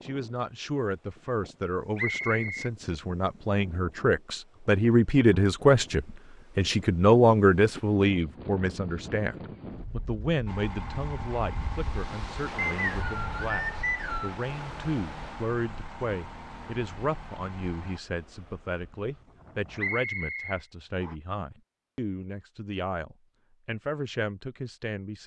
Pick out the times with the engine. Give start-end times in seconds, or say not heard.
10.4-18.0.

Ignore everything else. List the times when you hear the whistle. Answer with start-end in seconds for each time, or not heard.
1.9-2.7, 12.6-14.4, 19.8-21.1.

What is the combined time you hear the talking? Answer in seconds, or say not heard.
25 s.